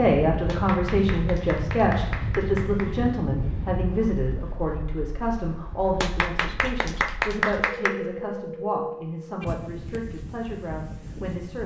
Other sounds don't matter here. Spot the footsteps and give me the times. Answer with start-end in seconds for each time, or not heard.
not heard.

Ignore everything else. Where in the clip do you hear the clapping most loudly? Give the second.
7 s.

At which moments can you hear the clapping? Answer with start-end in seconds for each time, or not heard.
0.5-2.9, 6.0-8.0.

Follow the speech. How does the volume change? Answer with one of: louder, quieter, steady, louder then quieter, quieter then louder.
quieter.